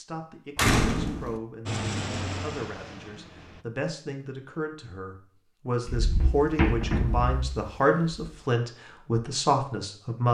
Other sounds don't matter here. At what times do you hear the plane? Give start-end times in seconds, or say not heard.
1.6-3.6.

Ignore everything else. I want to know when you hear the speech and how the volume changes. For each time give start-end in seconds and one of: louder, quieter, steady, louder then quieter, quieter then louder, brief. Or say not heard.
0.0-10.2 louder.